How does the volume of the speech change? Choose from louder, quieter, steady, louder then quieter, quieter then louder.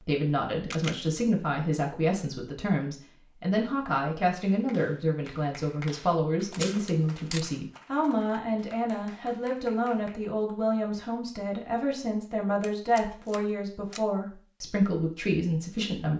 steady.